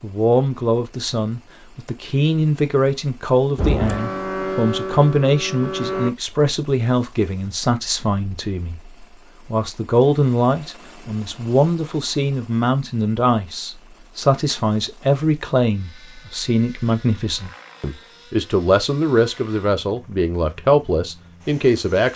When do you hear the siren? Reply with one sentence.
The siren can be heard from 3.5 to 6.1 s.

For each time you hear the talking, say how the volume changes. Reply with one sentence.
The talking can be heard from 0.0 to 22.1 s, at a steady volume.